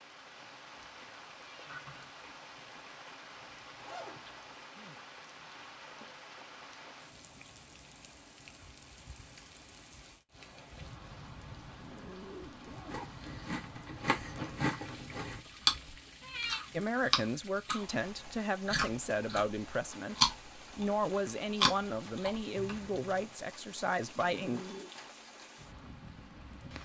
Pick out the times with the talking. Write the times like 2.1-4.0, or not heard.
16.7-24.6.